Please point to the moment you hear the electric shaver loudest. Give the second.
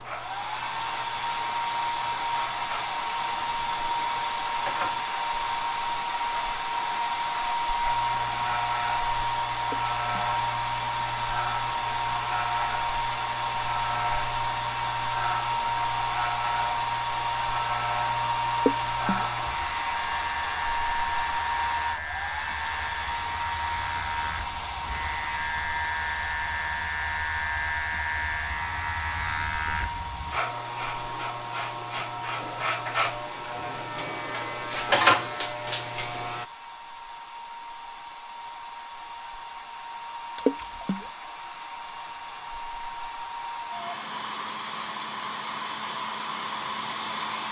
35 s.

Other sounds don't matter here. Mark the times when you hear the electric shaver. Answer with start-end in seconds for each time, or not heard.
0.0-36.5.